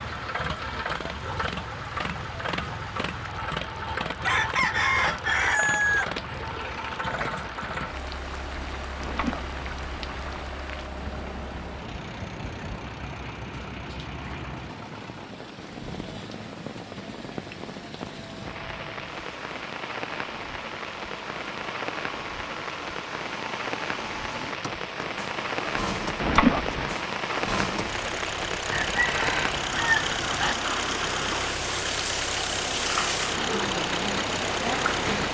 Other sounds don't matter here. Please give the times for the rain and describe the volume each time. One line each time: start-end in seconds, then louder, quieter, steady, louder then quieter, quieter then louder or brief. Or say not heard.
0.0-35.2 louder.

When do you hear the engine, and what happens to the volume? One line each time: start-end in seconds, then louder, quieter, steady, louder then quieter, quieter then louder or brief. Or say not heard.
0.0-35.2 quieter then louder.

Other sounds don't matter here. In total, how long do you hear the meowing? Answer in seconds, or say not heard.
2 s.